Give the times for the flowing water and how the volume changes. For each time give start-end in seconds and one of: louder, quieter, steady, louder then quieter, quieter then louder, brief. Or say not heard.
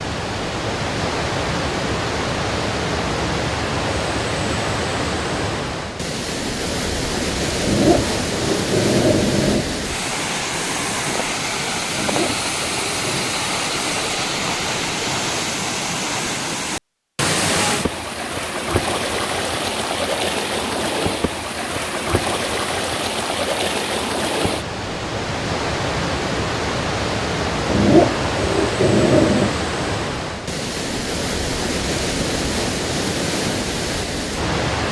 0.0-34.8 steady.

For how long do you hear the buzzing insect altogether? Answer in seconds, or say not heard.
not heard.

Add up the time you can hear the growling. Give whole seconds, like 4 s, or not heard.
5 s.